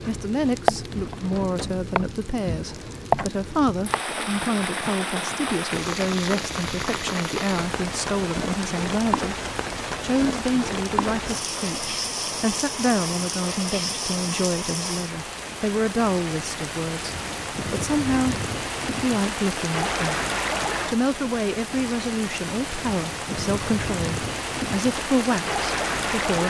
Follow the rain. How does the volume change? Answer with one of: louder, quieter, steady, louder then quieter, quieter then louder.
steady.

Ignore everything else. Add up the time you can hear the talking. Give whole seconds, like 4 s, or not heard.
24 s.